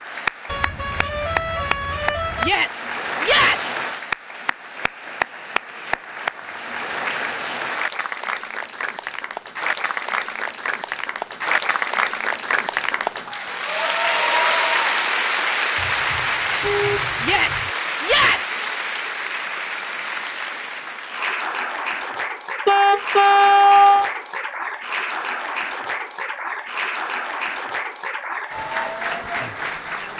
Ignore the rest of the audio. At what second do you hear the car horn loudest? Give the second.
24 s.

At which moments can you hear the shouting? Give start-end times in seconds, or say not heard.
2.4-3.8, 17.2-18.6.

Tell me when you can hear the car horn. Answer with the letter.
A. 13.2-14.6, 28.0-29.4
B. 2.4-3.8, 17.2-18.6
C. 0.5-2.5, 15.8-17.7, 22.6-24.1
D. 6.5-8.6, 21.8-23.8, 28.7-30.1
C.